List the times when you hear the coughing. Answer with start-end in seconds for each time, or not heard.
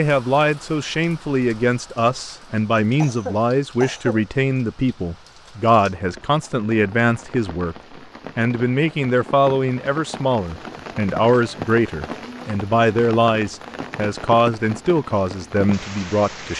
3.0-4.2.